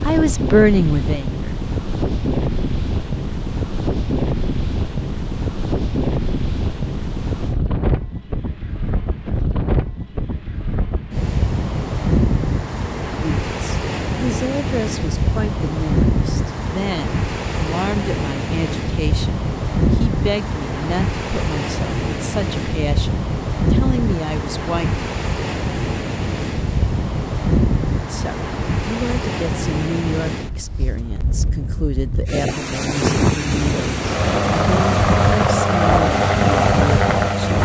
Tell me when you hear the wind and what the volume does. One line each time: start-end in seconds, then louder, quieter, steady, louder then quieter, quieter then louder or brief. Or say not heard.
0.0-37.6 steady.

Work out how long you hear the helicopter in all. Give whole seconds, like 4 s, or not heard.
4 s.